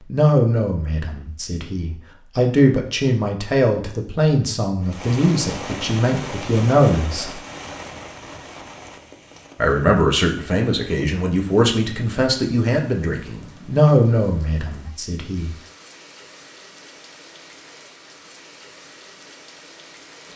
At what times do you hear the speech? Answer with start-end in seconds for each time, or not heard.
0.1-7.3, 9.6-15.6.